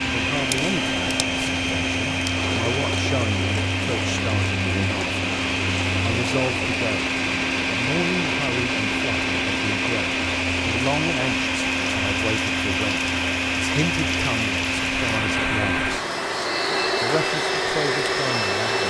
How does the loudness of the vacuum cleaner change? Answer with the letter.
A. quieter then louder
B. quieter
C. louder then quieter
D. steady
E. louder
D.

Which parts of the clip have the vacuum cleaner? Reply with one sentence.
The vacuum cleaner can be heard from 0.0 to 18.8 s.